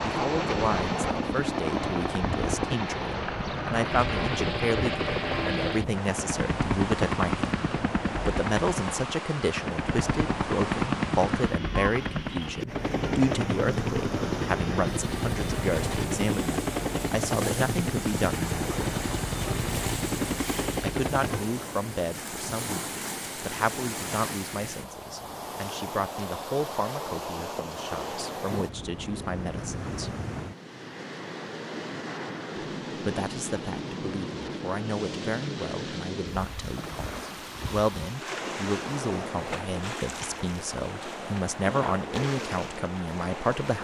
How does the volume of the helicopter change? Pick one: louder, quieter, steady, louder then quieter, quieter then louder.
steady.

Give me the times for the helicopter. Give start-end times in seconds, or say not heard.
0.0-21.4.